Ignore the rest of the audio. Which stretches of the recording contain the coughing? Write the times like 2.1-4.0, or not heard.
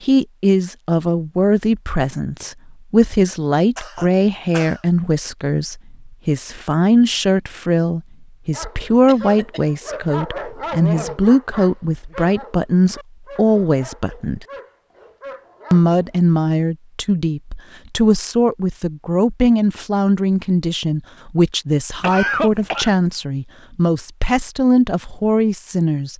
3.8-4.8, 9.1-9.7, 22.0-22.9.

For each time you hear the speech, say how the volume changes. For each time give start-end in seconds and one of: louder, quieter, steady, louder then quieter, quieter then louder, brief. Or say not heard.
0.0-14.4 steady
15.7-26.1 steady.